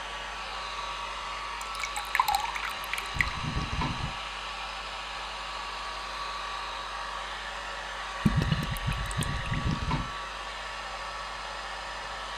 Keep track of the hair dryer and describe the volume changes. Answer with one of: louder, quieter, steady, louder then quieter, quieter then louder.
steady.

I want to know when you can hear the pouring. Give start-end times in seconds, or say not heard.
1.6-3.4, 8.2-9.9.